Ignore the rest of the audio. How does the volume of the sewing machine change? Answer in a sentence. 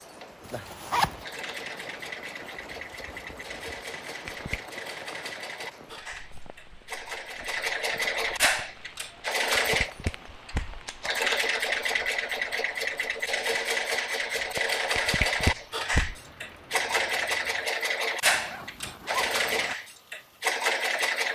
The loudness of the sewing machine goes up.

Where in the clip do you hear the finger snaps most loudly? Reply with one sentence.
The volume of the finger snaps peaks at 15 seconds.